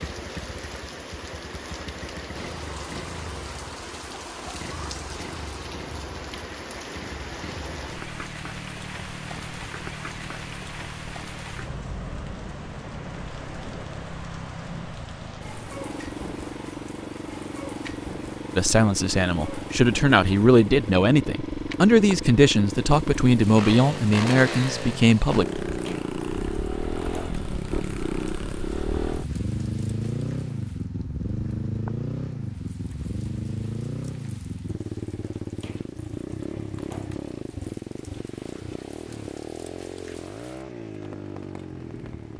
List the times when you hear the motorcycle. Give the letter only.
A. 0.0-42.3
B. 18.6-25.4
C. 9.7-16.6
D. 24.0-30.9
A.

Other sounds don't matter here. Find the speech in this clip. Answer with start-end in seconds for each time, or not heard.
18.6-25.4.